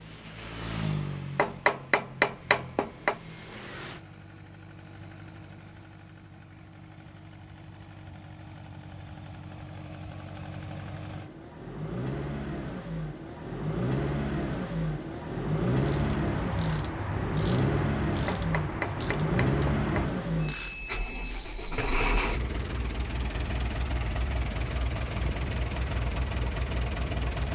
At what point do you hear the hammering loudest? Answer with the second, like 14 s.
2 s.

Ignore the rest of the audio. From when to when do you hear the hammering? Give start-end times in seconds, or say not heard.
1.4-3.2, 18.2-20.1.